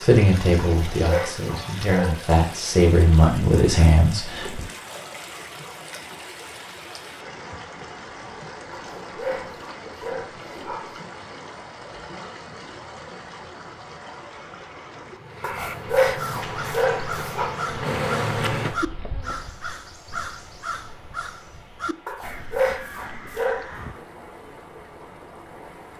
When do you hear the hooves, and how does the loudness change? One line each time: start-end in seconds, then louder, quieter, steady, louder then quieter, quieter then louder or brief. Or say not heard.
not heard.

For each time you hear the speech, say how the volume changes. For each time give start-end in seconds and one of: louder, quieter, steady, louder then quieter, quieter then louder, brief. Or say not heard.
0.0-4.6 quieter then louder.